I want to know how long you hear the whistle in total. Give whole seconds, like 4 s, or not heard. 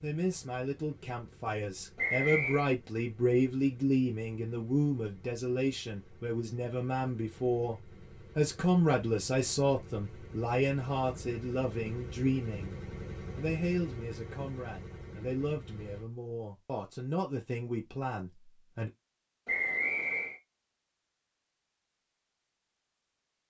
2 s.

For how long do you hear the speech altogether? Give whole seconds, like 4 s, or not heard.
19 s.